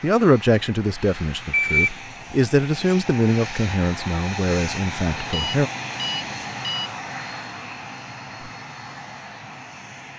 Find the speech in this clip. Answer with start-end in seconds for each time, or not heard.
0.0-5.7.